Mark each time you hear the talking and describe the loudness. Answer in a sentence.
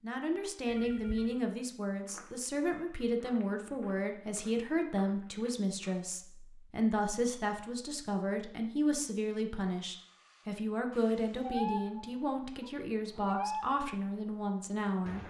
The talking can be heard from 0.0 to 15.2 s, at a steady volume.